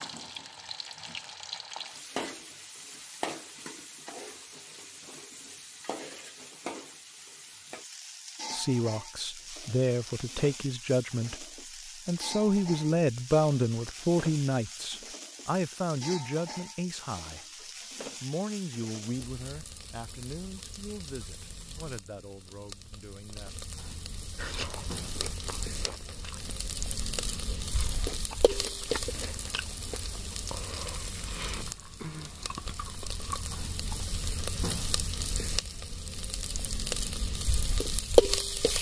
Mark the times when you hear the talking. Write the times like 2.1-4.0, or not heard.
8.5-23.5.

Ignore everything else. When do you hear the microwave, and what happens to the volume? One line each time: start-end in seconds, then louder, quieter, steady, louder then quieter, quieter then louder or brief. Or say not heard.
not heard.